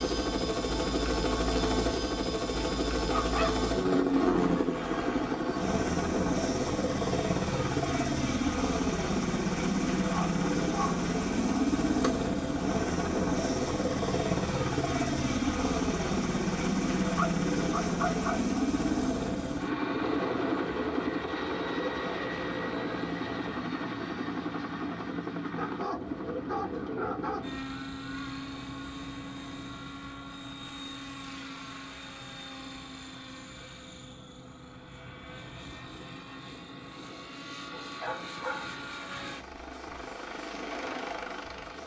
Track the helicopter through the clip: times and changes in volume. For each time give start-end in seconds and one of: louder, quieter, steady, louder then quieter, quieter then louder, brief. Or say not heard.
0.0-41.8 quieter.